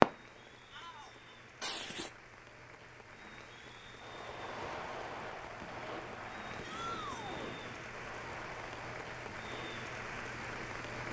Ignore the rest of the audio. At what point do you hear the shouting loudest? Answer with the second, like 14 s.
7 s.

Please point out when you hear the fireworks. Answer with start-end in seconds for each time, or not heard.
0.0-0.5, 1.6-2.1, 4.0-11.0.